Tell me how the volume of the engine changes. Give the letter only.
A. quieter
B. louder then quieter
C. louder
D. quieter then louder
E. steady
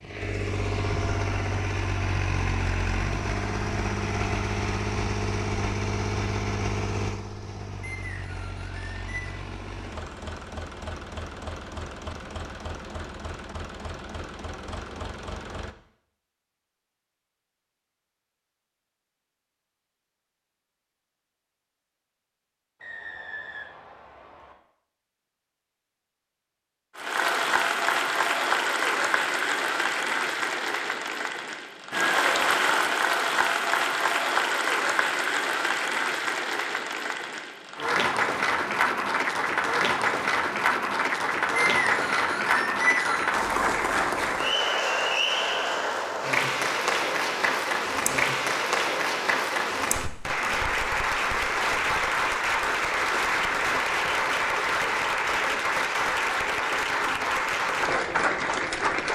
A.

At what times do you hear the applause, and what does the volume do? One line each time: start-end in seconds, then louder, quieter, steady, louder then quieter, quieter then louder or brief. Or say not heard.
26.9-59.1 steady.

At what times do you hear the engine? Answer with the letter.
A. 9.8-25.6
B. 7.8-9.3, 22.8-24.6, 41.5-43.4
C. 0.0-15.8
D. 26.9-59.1
C.